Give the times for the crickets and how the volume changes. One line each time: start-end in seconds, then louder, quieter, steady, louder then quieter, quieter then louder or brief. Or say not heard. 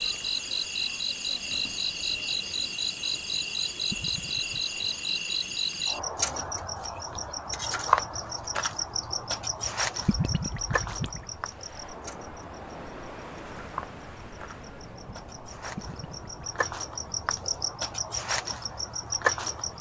0.0-19.7 quieter then louder.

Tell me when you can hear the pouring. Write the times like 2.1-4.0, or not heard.
3.9-4.6, 10.1-11.2, 15.8-16.6.